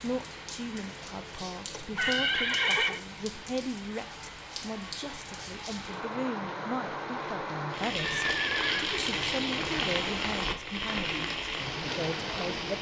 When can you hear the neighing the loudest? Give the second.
3 s.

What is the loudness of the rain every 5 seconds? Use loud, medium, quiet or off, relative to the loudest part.
medium, loud, loud.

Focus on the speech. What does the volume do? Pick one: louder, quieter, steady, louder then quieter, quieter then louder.
steady.